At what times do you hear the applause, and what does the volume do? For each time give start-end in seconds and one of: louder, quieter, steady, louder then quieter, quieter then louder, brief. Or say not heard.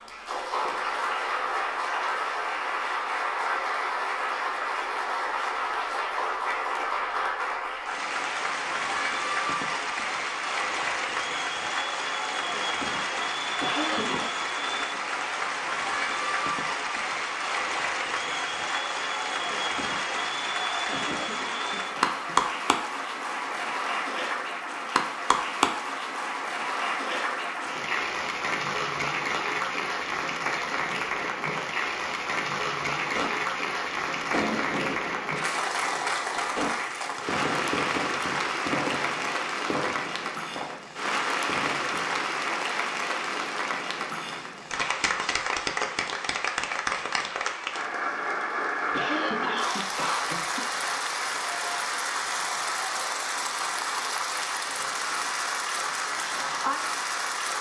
0.0-57.5 steady.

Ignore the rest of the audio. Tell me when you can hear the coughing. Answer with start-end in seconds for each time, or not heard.
13.6-14.4, 20.9-22.4, 48.9-50.4.